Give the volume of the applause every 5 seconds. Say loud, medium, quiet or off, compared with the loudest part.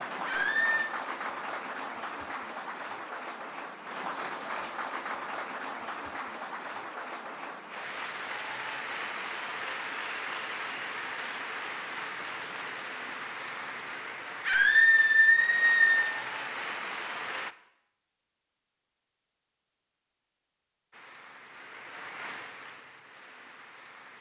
loud, loud, loud, loud, medium.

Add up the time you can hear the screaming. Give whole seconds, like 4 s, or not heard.
2 s.